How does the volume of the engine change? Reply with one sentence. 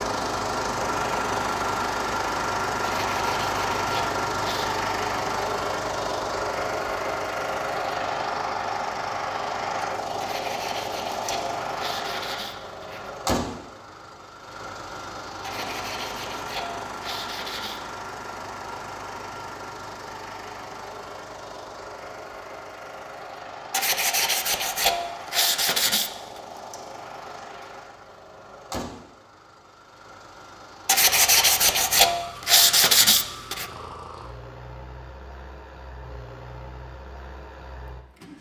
The loudness of the engine goes down.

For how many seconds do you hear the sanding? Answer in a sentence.
The sanding can be heard for 13 seconds in total.